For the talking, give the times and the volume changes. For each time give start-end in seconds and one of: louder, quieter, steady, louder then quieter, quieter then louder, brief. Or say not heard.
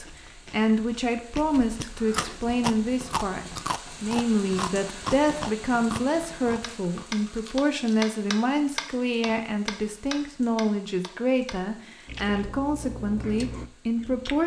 0.0-14.4 steady.